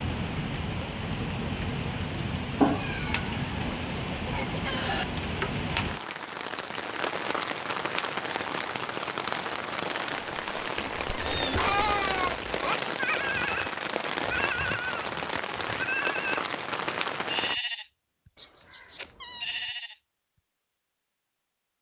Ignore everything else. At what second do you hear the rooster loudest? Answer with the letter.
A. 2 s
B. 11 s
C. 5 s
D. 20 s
C.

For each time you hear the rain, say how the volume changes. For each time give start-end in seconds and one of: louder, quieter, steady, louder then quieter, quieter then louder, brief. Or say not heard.
0.0-17.6 steady.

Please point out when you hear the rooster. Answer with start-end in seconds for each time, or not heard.
3.3-5.0.